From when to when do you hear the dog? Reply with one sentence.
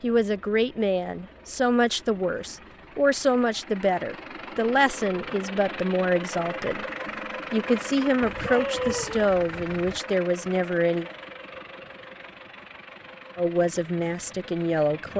You can hear the dog from 8.2 to 10.0 s.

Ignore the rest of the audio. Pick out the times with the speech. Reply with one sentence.
You can hear the speech from 0.0 to 6.8 s, from 7.5 to 11.1 s and from 13.3 to 15.1 s.